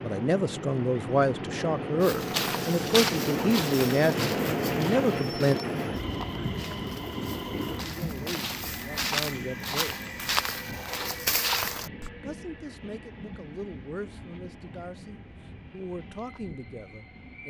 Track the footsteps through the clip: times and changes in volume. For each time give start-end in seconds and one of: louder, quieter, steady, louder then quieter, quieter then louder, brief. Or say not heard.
2.0-12.1 quieter then louder.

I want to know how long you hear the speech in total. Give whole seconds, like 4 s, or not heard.
13 s.